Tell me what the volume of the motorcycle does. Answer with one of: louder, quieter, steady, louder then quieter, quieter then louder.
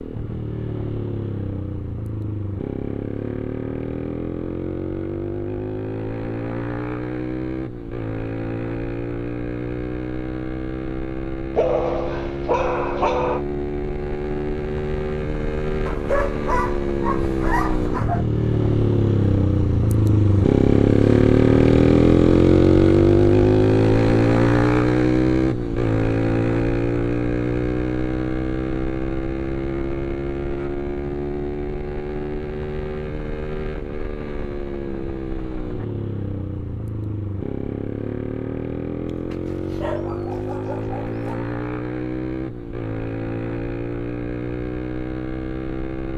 louder then quieter.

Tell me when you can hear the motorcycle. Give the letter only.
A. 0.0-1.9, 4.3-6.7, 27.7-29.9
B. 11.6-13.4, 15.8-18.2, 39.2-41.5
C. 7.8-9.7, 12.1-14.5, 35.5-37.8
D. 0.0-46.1
D.